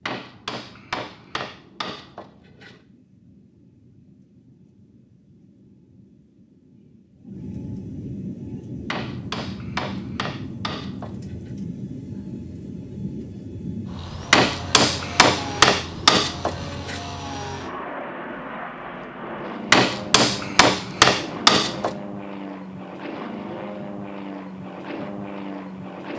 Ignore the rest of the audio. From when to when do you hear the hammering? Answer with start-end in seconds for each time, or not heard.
0.1-2.8, 8.9-11.4, 14.3-17.0, 19.7-21.9.